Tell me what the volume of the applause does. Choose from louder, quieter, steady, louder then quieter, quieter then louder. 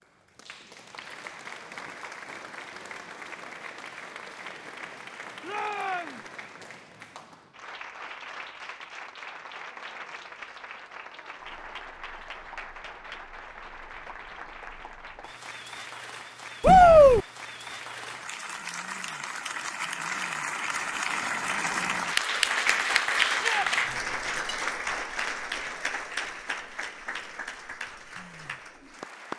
louder.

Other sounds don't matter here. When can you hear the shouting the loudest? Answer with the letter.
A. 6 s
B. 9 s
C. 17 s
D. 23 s
C.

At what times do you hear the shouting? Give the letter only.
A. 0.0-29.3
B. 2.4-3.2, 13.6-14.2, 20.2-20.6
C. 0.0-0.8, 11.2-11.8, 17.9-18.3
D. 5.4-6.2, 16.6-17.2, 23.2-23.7
D.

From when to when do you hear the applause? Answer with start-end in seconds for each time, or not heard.
0.0-29.3.